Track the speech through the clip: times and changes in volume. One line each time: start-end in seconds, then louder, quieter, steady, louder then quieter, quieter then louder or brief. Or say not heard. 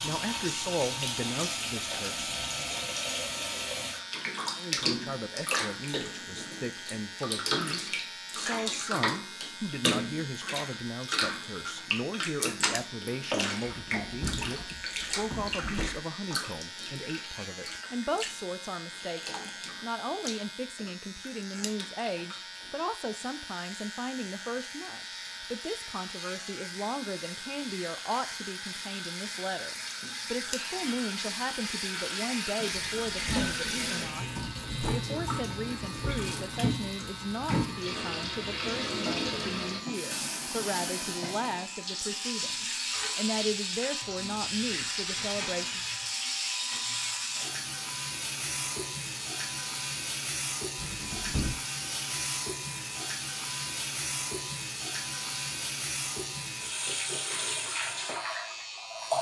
0.0-2.3 brief
4.5-45.9 steady.